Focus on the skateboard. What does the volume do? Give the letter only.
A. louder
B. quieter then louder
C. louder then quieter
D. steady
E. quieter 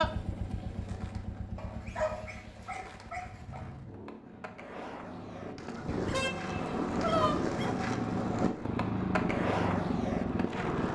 A.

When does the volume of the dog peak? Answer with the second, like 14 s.
7 s.